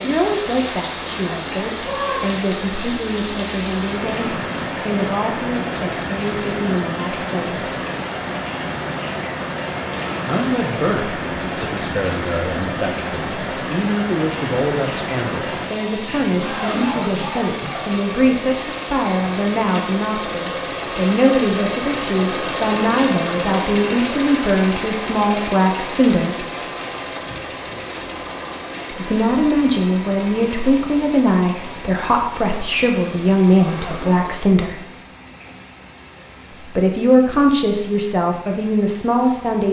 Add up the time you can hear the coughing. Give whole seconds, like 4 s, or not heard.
4 s.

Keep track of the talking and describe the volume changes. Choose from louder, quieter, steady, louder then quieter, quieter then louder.
louder.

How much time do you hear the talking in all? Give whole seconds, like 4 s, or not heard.
33 s.